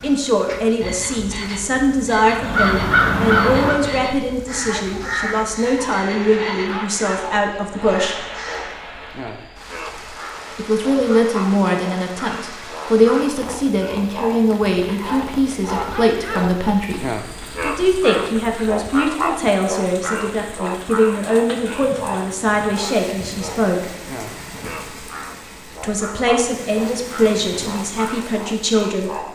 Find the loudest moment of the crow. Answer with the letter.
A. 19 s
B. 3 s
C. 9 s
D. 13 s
B.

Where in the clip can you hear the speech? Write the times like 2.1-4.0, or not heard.
0.0-8.2, 10.6-23.9, 25.8-29.3.